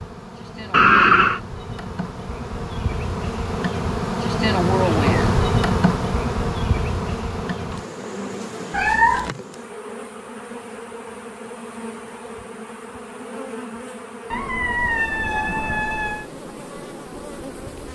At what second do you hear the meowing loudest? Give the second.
1 s.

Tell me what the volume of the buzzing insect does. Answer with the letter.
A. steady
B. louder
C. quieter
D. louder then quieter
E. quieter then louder
D.